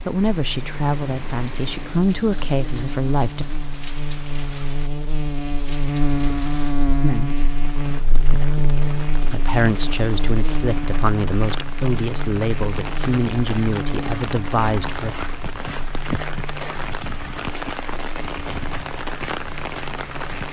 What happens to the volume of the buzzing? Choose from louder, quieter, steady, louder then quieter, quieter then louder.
louder then quieter.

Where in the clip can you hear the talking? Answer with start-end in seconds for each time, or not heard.
0.1-3.5, 7.0-7.5, 9.3-15.3.